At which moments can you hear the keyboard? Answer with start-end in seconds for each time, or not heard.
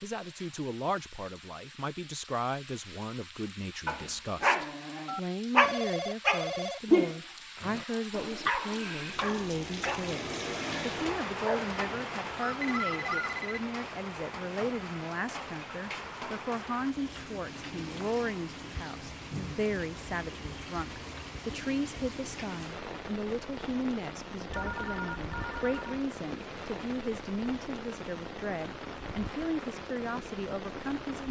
not heard.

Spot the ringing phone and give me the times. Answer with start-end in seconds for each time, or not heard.
5.0-6.8, 12.6-13.6, 24.5-26.1.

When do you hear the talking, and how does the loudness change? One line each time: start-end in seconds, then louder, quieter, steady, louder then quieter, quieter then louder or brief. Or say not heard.
0.0-31.2 steady.